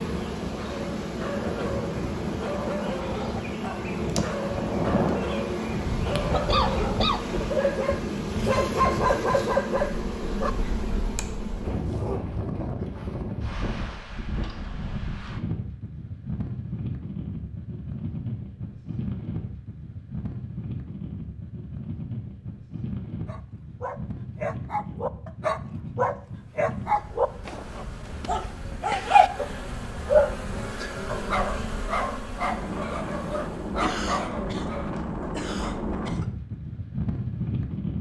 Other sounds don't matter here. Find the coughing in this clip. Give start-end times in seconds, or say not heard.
6.2-7.2, 33.8-34.7, 35.4-36.3.